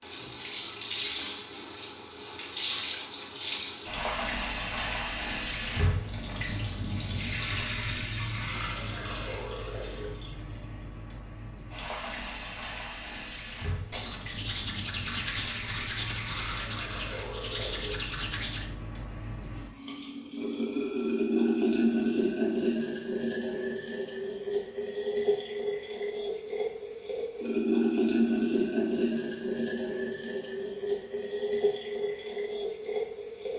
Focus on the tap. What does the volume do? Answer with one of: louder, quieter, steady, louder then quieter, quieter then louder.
quieter then louder.